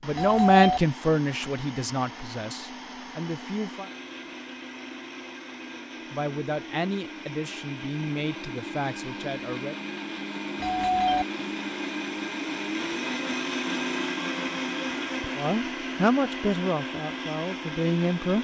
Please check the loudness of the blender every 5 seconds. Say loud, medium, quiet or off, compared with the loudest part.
medium, medium, loud, loud.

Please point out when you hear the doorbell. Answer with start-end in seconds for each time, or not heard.
0.1-0.8, 10.6-11.2.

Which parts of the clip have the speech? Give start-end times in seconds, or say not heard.
0.0-3.9, 6.1-9.8, 15.3-18.3.